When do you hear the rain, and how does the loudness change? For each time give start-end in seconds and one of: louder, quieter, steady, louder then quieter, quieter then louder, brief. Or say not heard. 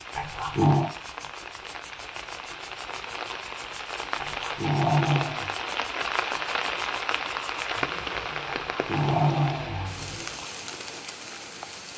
0.0-11.9 louder then quieter.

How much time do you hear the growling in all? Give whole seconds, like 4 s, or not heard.
4 s.